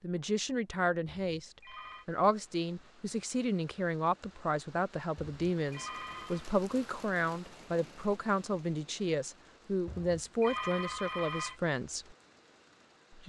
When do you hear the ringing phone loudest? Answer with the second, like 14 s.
11 s.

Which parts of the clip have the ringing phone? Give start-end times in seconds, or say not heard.
1.2-2.0, 5.2-6.5, 9.8-11.6.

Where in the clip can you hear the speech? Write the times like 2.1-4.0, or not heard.
0.0-12.2.